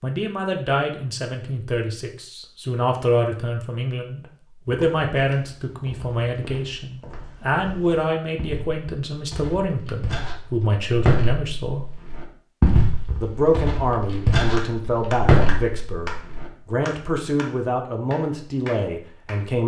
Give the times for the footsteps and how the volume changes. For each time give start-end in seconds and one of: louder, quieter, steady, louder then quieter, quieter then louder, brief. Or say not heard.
4.7-16.5 louder.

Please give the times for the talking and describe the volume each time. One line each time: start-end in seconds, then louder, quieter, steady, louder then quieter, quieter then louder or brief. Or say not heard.
0.0-11.8 steady
13.2-19.6 steady.